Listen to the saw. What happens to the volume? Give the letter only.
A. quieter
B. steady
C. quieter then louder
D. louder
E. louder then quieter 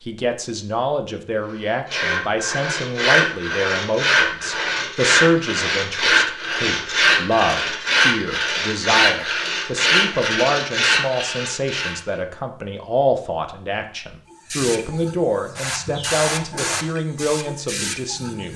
B.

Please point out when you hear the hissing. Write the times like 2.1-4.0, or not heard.
14.3-18.5.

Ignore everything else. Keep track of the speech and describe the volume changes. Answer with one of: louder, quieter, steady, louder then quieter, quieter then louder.
steady.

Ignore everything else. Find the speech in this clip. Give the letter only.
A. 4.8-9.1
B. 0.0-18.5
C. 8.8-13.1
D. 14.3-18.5
B.